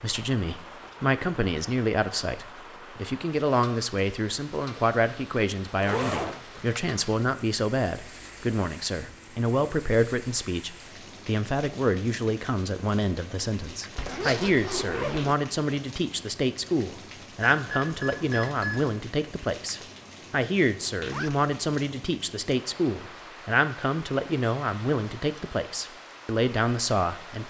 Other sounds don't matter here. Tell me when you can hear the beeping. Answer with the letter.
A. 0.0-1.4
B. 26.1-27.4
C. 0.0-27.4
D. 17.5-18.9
D.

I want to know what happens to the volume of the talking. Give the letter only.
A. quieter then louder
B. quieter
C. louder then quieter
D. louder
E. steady
E.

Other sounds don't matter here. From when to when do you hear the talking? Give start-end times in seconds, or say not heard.
0.0-27.4.